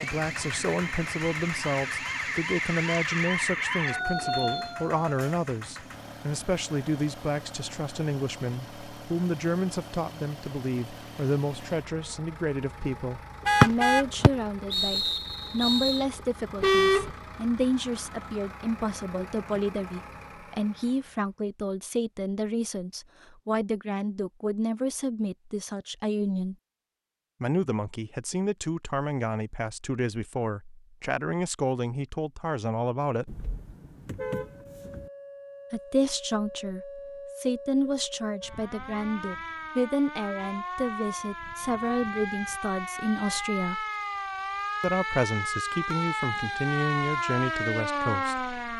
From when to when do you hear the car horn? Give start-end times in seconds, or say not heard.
13.4-14.1, 16.6-17.1, 33.2-35.0.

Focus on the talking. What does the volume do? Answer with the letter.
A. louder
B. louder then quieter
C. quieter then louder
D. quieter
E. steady
E.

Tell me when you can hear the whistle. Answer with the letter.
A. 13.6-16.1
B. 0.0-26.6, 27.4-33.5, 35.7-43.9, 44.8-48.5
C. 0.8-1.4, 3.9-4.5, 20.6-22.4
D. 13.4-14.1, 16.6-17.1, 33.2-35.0
A.